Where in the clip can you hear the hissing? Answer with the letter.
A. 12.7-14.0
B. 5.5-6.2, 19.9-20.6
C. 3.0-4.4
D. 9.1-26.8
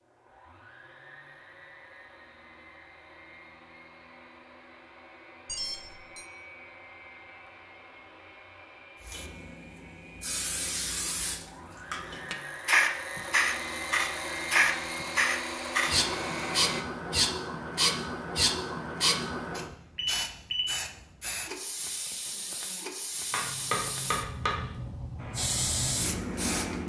D.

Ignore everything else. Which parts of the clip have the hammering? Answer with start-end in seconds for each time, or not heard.
23.3-24.6.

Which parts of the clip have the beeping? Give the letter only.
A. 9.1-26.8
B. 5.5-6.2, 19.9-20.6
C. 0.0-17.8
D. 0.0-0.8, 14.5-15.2
B.